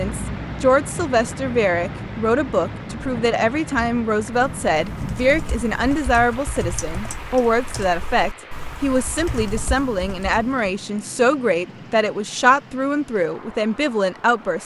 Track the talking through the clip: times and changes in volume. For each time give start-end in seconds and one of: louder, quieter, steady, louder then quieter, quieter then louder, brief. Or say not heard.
0.0-14.6 steady.